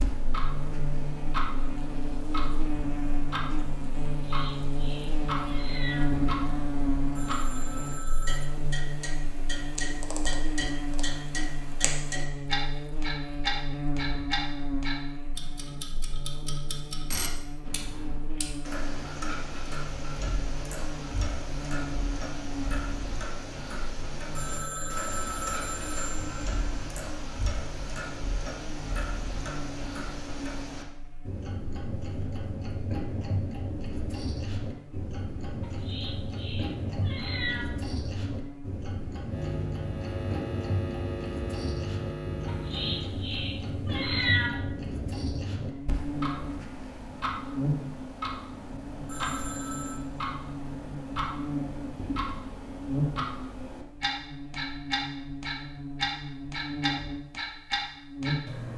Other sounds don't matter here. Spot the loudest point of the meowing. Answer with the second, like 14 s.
44 s.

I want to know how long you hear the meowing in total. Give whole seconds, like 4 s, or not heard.
6 s.